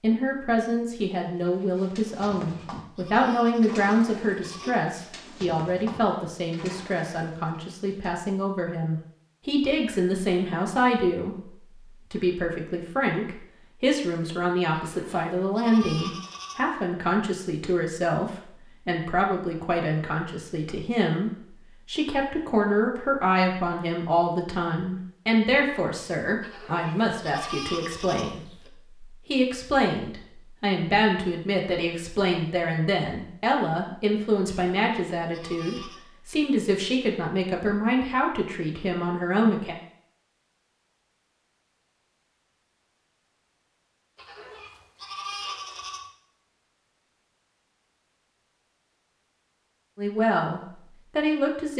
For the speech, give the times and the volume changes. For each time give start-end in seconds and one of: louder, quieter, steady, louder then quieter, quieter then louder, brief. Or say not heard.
0.0-39.8 steady
50.0-51.7 brief.